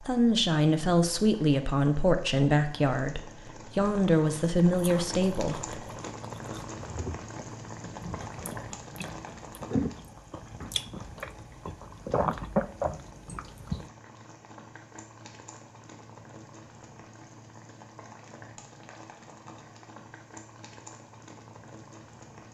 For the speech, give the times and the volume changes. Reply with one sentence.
The speech can be heard from 0.0 to 5.9 s, at a steady volume.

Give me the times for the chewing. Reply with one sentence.
You can hear the chewing from 4.8 to 13.9 s.